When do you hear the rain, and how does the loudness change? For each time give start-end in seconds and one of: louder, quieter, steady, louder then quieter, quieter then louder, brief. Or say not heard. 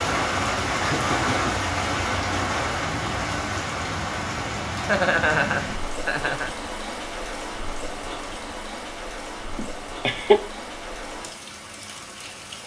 0.0-12.6 quieter.